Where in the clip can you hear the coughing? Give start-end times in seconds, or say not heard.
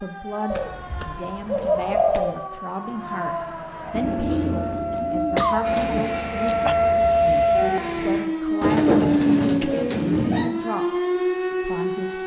4.9-6.8.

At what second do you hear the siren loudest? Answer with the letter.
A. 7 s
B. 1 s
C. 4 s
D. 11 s
A.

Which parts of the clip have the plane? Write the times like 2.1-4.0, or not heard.
3.9-8.2.